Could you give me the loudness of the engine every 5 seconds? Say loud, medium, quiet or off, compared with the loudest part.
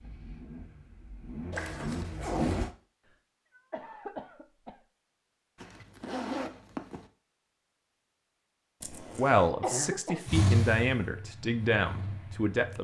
loud, off, loud.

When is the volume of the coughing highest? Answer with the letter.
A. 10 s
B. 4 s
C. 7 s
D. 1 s
A.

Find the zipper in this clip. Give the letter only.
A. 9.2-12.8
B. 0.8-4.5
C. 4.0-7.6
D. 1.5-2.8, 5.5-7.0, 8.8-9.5
D.